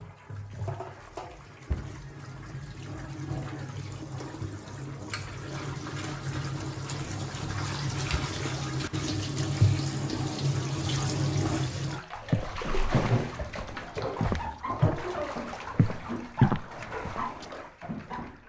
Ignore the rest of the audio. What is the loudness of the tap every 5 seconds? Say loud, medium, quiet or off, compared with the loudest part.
medium, loud, loud, medium.